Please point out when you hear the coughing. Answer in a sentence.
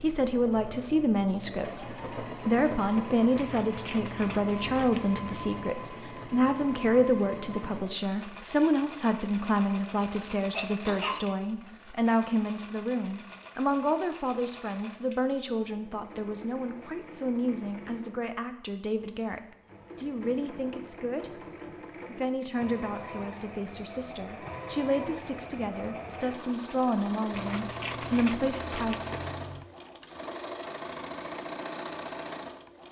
The coughing can be heard from 10.5 to 11.2 s.